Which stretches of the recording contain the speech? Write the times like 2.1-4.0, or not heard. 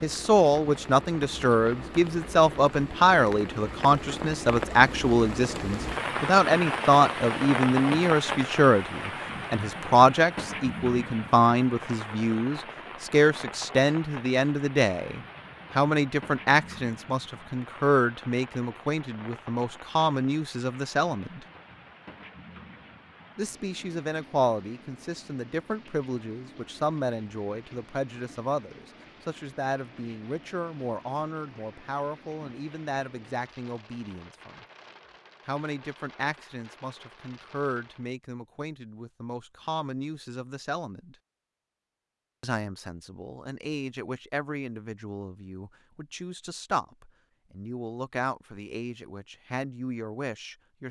0.0-21.4, 23.4-34.6, 35.5-41.1, 42.4-50.8.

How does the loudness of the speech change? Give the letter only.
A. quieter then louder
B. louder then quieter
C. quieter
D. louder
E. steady
C.